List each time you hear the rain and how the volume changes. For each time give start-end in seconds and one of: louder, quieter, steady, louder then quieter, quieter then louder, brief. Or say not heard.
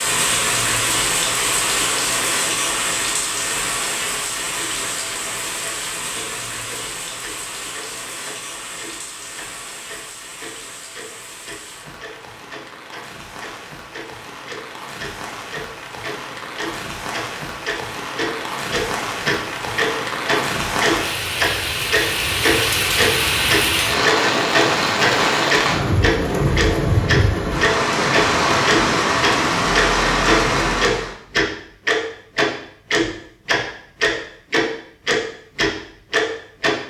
0.0-31.1 quieter then louder.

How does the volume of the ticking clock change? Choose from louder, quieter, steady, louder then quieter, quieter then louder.
louder.